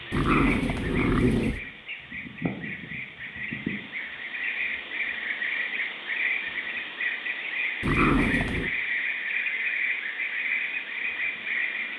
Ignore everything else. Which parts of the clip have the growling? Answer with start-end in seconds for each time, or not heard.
0.1-1.6, 7.8-8.7.